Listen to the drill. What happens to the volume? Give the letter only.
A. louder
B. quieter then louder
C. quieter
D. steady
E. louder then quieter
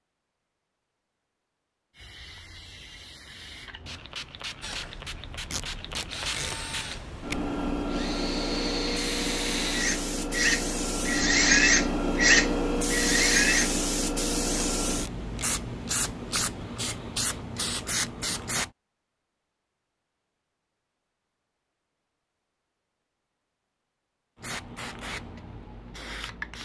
A.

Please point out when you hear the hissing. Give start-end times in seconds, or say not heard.
1.9-18.7, 24.4-26.6.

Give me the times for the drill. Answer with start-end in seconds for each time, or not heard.
4.6-13.8.